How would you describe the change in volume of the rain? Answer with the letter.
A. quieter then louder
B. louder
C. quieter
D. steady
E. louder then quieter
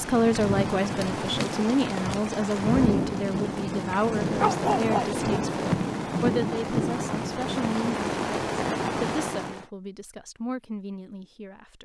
D.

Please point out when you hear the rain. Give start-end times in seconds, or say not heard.
0.0-9.7.